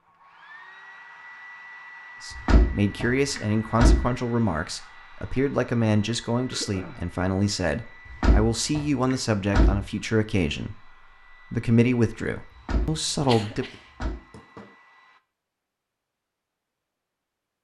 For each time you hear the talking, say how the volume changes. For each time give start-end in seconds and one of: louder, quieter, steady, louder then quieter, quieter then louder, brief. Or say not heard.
2.2-10.9 steady
11.5-13.7 brief.